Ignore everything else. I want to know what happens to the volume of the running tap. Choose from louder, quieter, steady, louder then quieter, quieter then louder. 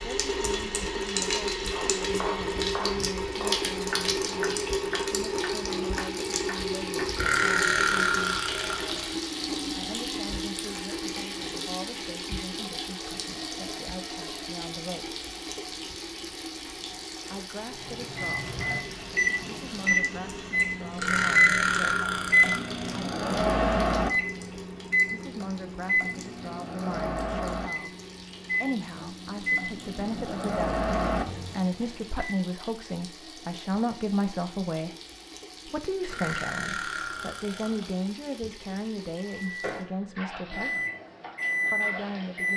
quieter.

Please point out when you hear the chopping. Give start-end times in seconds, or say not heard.
1.7-7.1.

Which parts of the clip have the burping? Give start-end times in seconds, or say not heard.
7.2-9.2, 20.9-23.5, 36.0-38.0.